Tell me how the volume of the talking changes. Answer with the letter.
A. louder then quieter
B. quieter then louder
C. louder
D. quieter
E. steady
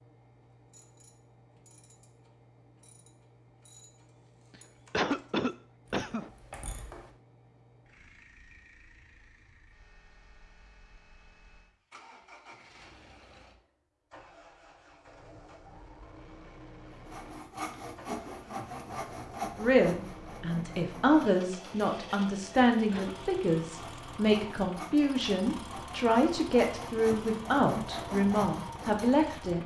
E.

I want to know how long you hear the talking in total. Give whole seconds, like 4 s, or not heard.
10 s.